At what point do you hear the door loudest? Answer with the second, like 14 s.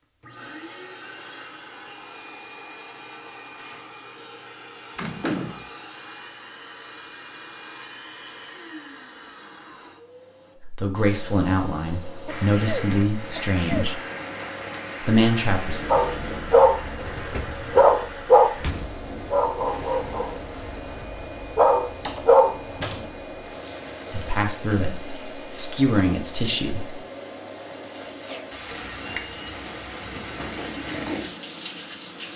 5 s.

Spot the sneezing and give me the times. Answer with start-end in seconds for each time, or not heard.
3.5-4.0, 12.2-13.9, 27.7-28.4.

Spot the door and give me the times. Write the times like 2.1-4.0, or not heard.
5.0-5.7, 18.5-19.1, 21.9-23.1.